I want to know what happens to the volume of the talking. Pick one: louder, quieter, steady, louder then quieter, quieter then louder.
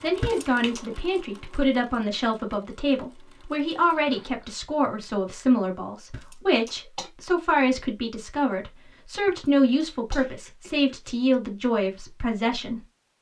steady.